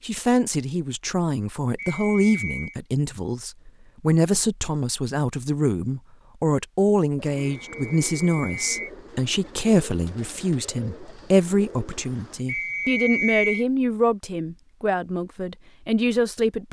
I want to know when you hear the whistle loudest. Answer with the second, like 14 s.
13 s.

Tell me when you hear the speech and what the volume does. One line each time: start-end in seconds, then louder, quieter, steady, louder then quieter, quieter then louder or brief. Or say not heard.
0.0-16.6 steady.